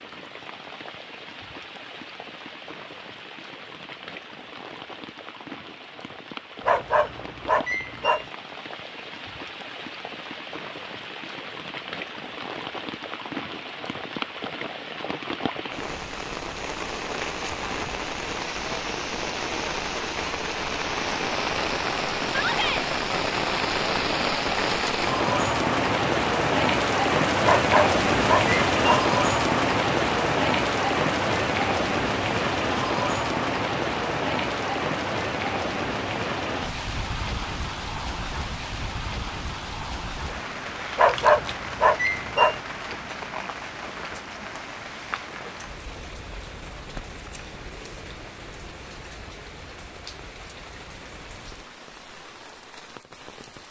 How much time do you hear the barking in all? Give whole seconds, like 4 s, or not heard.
5 s.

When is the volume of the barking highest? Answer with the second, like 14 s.
41 s.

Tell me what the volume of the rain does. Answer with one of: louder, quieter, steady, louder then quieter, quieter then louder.
louder then quieter.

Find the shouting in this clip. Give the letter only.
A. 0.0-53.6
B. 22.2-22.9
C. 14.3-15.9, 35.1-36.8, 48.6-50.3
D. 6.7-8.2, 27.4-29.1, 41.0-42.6
B.